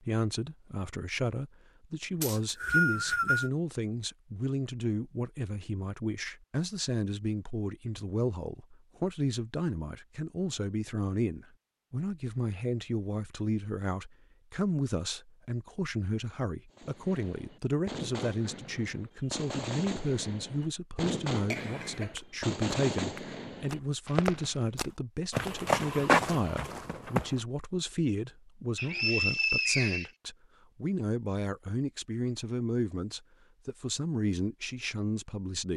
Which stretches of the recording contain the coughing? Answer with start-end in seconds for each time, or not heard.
21.5-22.1.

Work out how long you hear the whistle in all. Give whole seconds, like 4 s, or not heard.
3 s.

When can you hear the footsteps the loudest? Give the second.
26 s.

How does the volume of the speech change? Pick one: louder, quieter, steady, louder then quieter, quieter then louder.
steady.